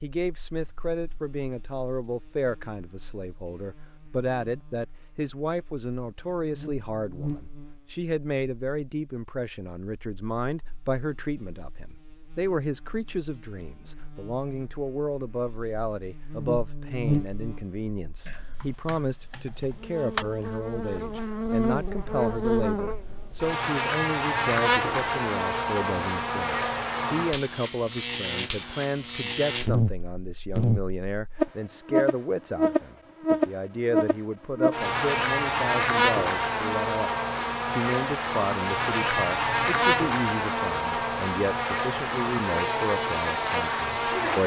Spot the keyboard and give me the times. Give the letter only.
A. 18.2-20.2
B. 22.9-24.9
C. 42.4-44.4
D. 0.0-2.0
A.